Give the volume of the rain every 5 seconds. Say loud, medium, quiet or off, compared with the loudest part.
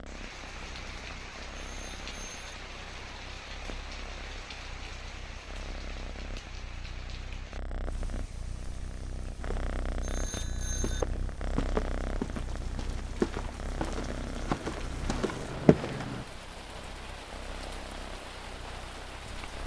loud, medium, medium, loud.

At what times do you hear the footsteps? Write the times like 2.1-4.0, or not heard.
9.3-16.2.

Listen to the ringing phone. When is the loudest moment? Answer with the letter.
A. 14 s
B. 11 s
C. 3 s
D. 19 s
B.